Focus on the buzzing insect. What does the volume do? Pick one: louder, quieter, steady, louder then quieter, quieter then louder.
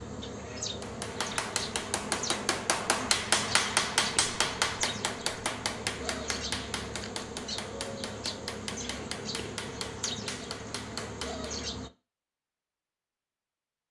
steady.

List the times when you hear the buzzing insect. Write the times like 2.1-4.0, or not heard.
0.0-11.9.